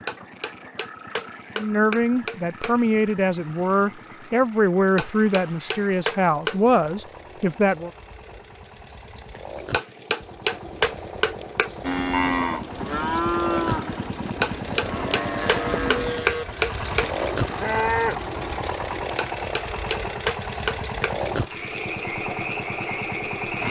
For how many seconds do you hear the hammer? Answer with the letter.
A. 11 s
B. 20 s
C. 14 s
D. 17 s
A.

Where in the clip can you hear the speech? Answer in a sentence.
The speech can be heard from 1.6 to 7.9 s.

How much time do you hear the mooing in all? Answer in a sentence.
You can hear the mooing for 7 seconds altogether.